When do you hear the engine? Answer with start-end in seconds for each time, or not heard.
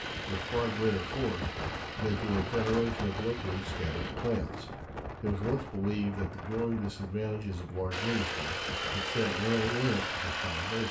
0.0-4.2, 7.9-10.8.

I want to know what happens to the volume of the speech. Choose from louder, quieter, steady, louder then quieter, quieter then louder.
steady.